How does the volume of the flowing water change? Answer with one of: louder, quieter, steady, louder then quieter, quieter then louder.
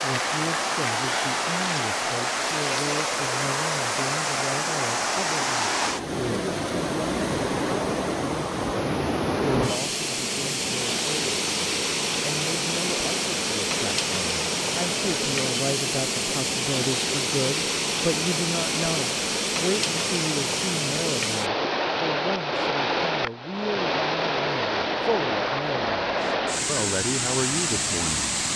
steady.